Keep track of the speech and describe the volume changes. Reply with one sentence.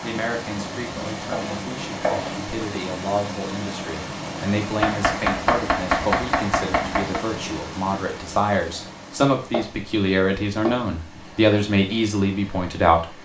The loudness of the speech goes up.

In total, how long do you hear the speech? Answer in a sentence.
You can hear the speech for 13 seconds altogether.